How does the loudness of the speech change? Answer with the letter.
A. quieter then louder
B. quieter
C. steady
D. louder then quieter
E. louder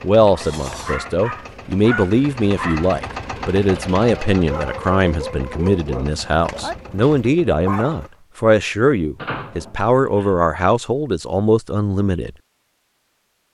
C.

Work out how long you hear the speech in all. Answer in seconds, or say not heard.
12 s.